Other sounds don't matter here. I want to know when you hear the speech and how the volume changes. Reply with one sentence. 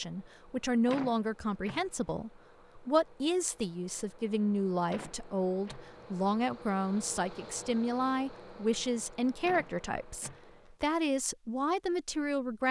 The speech can be heard from 0.0 to 12.6 s, at a steady volume.